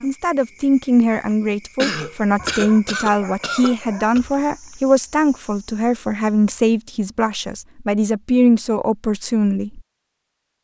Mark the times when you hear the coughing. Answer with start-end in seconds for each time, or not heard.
1.8-4.2.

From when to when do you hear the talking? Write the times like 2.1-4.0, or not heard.
0.0-9.8.